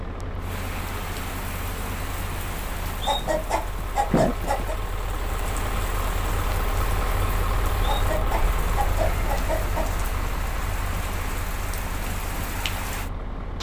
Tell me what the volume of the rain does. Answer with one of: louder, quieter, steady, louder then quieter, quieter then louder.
steady.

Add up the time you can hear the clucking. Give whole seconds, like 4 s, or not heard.
4 s.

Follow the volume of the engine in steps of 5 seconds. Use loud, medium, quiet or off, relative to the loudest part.
medium, loud, medium.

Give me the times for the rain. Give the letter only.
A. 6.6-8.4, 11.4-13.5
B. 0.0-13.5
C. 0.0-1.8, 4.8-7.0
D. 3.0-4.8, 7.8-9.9
B.